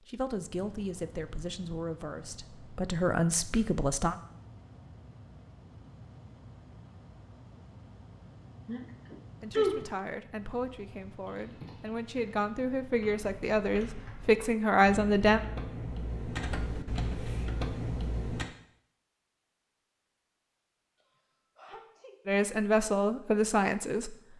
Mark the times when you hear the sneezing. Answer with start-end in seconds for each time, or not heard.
8.7-9.8, 21.0-22.1.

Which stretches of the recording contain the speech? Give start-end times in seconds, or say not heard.
0.1-4.2, 9.4-15.4, 22.2-24.1.